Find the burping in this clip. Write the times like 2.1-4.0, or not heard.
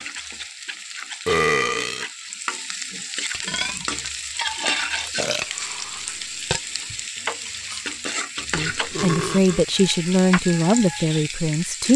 1.2-2.0, 4.6-5.5, 8.6-9.7.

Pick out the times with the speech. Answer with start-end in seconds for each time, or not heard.
8.5-11.9.